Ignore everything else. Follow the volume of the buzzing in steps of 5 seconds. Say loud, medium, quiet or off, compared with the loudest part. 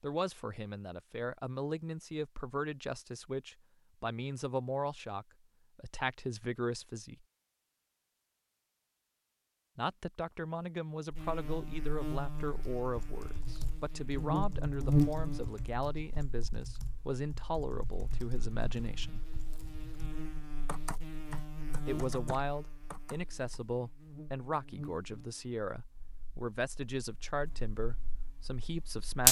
off, off, loud, medium, medium, loud.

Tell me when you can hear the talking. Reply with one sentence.
You can hear the talking from 0.0 to 7.2 s, from 9.8 to 19.2 s and from 21.7 to 29.2 s.